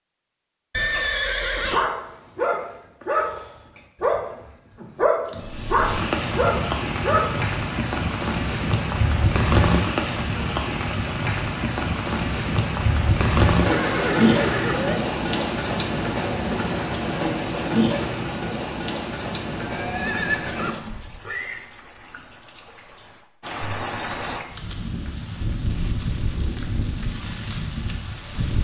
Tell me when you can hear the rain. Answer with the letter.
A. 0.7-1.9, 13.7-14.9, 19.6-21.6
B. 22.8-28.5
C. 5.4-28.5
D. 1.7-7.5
C.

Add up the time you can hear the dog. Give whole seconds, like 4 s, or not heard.
6 s.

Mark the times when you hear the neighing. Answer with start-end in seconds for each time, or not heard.
0.7-1.9, 13.7-14.9, 19.6-21.6.